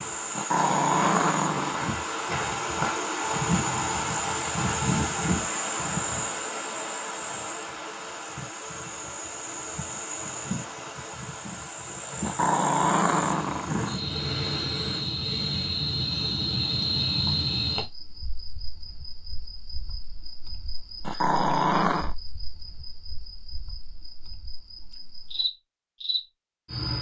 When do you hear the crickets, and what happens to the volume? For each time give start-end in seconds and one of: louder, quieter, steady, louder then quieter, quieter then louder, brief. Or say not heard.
0.0-26.9 quieter.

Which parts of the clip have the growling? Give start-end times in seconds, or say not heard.
0.3-1.9, 12.2-13.9, 21.1-22.1.